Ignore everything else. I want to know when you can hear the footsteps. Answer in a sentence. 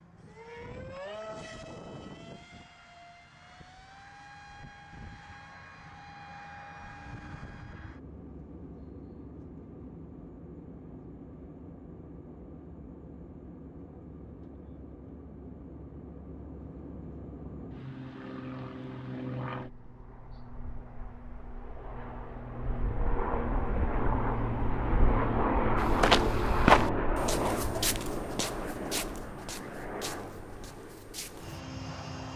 You can hear the footsteps from 25.8 to 31.6 s.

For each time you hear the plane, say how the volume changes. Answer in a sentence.
You can hear the plane from 0.0 to 32.3 s, getting louder.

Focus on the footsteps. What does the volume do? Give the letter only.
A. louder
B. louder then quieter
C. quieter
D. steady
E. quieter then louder
C.